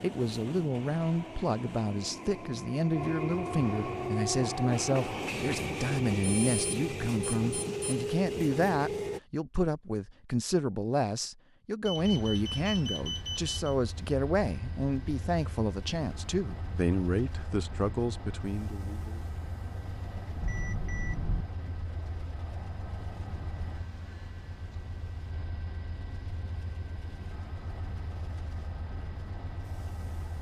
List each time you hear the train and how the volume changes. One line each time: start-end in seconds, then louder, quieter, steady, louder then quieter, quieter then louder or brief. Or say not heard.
0.0-9.2 louder
11.9-30.3 steady.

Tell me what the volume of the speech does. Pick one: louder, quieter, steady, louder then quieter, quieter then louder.
steady.